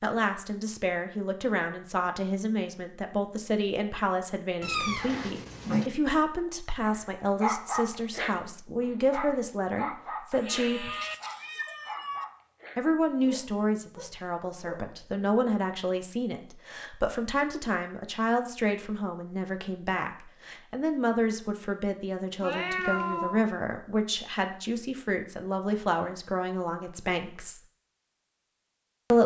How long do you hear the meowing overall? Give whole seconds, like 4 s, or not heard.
4 s.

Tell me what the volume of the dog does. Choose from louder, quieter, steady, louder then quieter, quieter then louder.
quieter.